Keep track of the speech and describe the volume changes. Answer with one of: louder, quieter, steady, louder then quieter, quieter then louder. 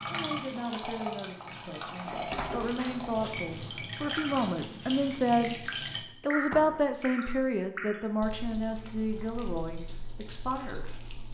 louder then quieter.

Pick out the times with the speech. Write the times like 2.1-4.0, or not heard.
0.1-5.5, 6.2-11.2.